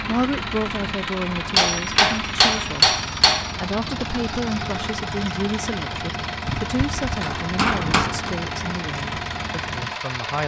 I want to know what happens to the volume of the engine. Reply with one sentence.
The volume of the engine stays about the same.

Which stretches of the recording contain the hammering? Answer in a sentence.
You can hear the hammering from 1.6 to 3.5 s and from 6.5 to 8.3 s.